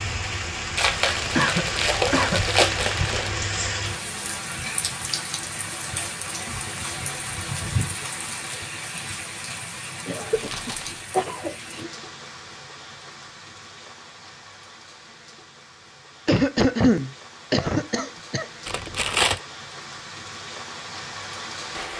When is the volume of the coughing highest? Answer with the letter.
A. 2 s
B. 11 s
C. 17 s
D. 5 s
C.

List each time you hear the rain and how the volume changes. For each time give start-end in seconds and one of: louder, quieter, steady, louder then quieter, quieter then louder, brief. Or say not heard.
0.0-21.9 quieter then louder.